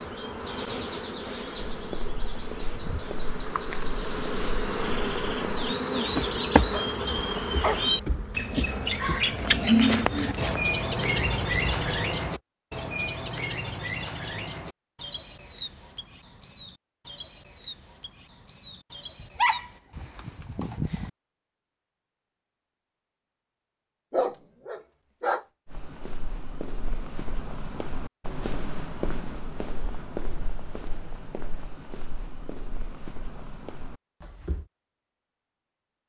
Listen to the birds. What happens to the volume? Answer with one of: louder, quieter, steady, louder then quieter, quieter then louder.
louder then quieter.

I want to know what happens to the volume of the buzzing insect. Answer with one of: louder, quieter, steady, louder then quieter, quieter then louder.
louder then quieter.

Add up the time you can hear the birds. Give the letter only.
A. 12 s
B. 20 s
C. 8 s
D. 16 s
B.